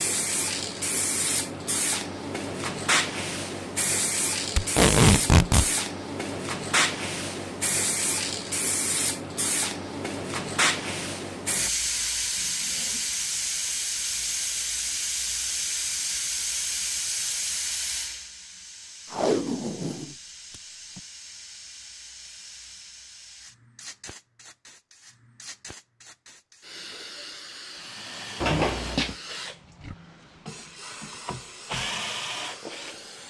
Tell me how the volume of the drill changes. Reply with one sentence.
The volume of the drill goes down, then up.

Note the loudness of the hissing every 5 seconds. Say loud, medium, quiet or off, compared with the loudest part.
loud, loud, loud, loud, quiet, quiet, quiet.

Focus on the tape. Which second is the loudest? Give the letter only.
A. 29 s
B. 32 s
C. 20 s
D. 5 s
D.